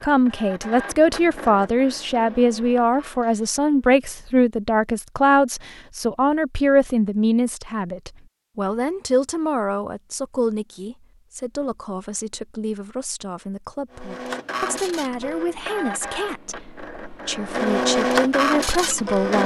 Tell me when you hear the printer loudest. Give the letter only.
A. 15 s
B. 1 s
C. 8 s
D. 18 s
D.